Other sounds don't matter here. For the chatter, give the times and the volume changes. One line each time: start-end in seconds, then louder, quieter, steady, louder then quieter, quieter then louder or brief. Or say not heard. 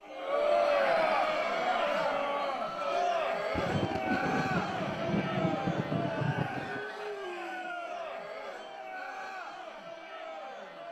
0.0-10.8 quieter.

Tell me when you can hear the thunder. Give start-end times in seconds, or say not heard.
3.5-6.8.